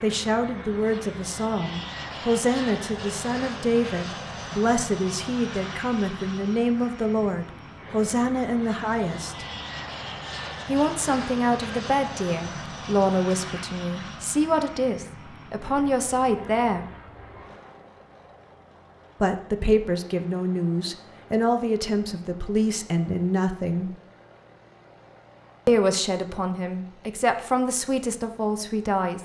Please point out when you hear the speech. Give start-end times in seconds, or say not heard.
0.0-9.4, 10.7-16.9, 19.2-24.0, 25.6-29.2.